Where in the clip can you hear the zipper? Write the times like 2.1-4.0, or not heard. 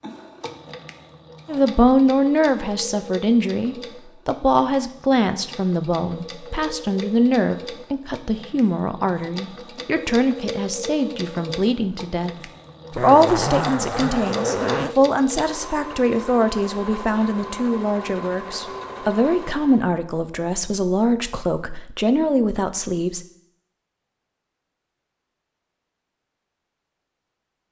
12.9-14.9.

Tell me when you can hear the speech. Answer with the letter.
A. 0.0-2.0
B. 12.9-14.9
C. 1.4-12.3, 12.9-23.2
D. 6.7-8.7
C.